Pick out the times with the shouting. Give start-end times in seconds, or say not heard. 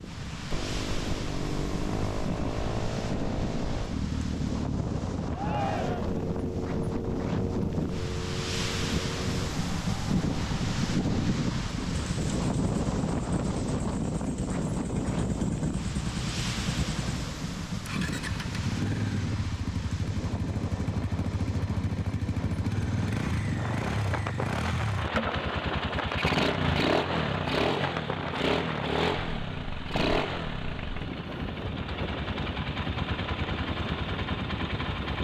5.3-6.2.